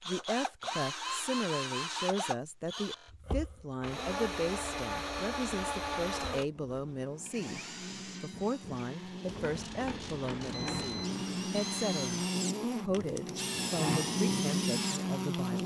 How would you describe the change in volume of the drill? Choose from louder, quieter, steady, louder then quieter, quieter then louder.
quieter then louder.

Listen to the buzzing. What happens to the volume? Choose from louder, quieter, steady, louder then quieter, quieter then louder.
louder.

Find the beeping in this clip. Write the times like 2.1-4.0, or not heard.
10.3-12.3.